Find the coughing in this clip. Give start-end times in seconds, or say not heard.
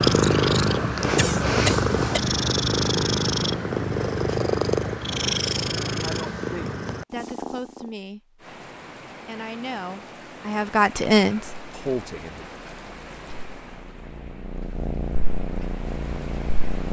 1.1-2.2.